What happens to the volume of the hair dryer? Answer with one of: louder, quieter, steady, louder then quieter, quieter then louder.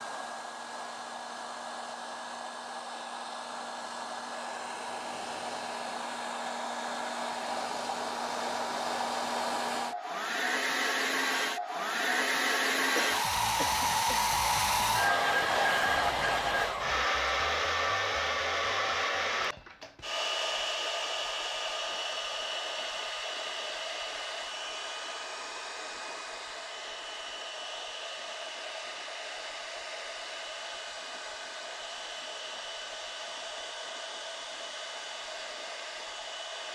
louder then quieter.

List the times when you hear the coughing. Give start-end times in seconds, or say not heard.
12.9-14.2.